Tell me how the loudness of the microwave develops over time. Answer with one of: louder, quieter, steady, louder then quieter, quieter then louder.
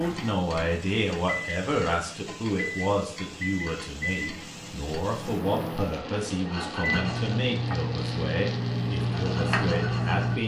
louder.